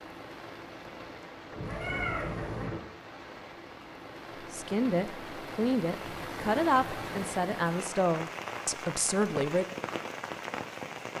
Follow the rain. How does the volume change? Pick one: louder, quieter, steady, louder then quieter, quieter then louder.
louder.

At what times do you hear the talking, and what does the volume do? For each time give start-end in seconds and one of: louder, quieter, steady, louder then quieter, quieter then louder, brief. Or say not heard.
4.5-9.7 steady.